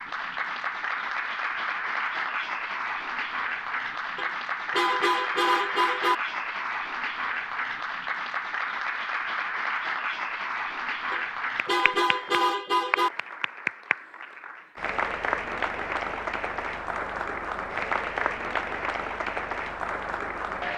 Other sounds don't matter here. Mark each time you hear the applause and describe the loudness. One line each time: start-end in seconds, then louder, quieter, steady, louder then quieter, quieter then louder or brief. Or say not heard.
0.0-20.7 steady.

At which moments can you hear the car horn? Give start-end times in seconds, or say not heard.
4.2-6.2, 11.1-13.1.